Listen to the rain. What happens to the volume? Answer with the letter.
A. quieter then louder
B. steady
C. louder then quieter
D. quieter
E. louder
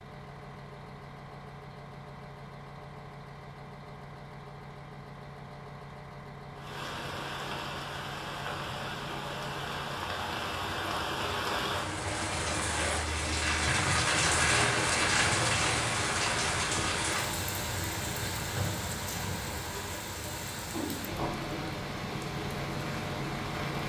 C.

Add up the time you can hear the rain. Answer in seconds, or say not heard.
17 s.